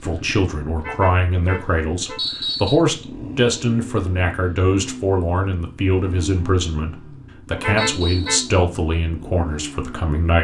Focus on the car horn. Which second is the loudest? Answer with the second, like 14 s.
8 s.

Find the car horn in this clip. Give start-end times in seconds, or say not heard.
0.8-2.2, 7.5-8.4.